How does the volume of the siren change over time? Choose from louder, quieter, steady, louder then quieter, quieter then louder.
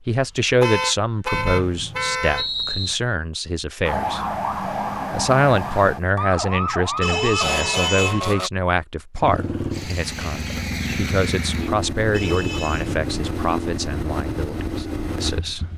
steady.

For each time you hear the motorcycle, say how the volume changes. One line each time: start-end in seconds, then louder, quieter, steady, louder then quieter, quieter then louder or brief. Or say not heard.
9.2-15.7 steady.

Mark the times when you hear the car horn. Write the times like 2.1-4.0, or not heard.
0.6-2.5, 7.0-8.2, 12.1-12.9.